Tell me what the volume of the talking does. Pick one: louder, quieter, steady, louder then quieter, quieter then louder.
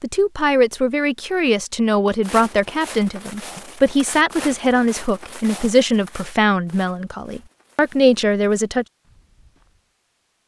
steady.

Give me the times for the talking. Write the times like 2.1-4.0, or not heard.
0.0-8.8.